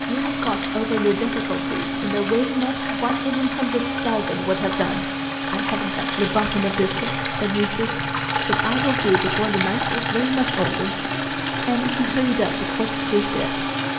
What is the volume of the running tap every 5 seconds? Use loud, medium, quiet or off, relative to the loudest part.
medium, loud, loud.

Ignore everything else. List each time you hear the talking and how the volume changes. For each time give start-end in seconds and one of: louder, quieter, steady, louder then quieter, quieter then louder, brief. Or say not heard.
0.1-13.7 steady.